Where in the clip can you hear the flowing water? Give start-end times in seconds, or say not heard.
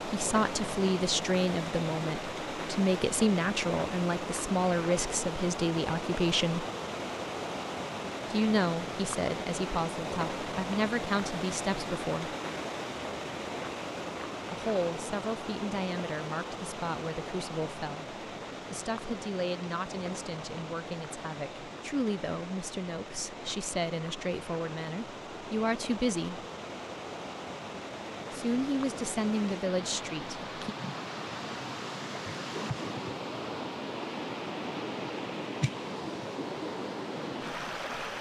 0.0-38.1.